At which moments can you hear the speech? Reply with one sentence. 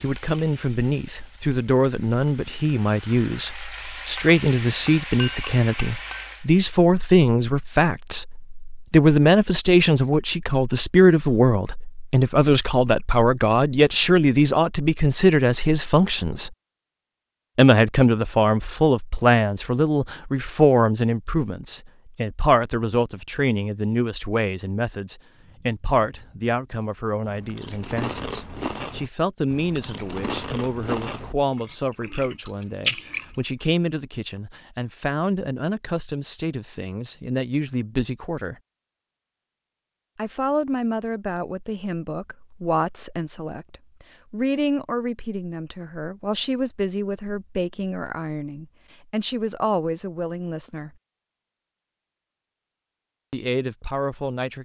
The speech can be heard from 0.0 to 16.5 s, from 17.6 to 38.5 s, from 40.1 to 50.9 s and from 53.3 to 54.6 s.